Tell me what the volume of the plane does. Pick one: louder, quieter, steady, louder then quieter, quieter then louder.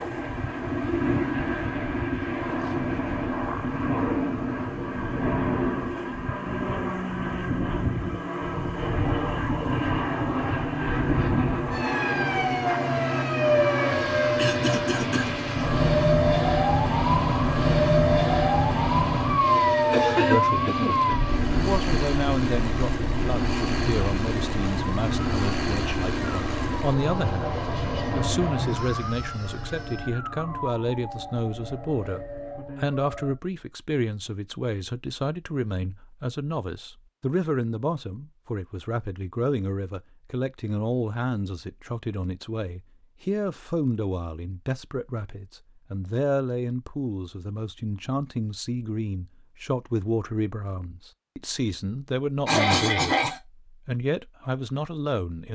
steady.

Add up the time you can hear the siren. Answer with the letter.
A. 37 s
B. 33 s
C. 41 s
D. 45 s
B.